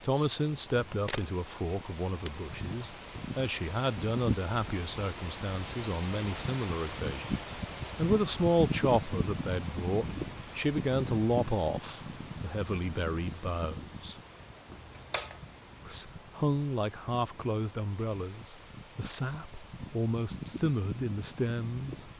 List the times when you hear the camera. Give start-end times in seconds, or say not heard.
1.1-2.3, 14.7-15.5.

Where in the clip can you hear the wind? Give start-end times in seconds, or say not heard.
0.0-22.1.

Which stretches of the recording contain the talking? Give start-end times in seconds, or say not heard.
0.0-14.2, 15.8-22.1.